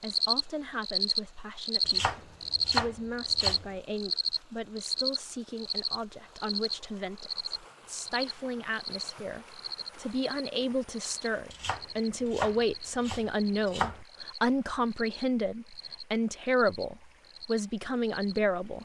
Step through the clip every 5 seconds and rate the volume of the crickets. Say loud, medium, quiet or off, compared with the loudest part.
loud, medium, quiet, quiet.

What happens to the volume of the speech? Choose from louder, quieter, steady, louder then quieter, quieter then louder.
louder.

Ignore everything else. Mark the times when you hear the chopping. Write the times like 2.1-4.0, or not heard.
1.9-3.7, 11.5-14.0.